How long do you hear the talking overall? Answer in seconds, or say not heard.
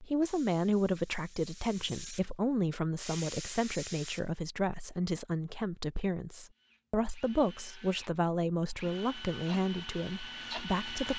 11 s.